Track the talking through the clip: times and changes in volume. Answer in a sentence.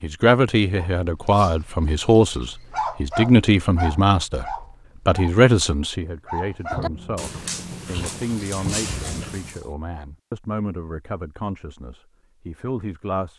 You can hear the talking from 0.0 to 13.3 s, getting quieter.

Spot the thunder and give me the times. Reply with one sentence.
You can hear the thunder from 6.7 to 9.6 s.